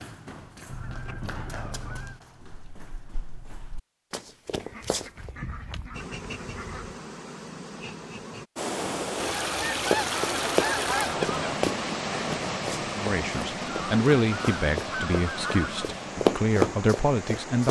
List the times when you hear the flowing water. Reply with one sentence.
The flowing water can be heard from 8.6 to 17.6 s.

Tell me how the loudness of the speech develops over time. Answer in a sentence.
The loudness of the speech goes down, then up.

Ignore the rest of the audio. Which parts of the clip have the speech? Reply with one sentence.
You can hear the speech from 12.9 to 17.6 s.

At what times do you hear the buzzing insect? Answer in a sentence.
The buzzing insect can be heard from 5.9 to 8.5 s.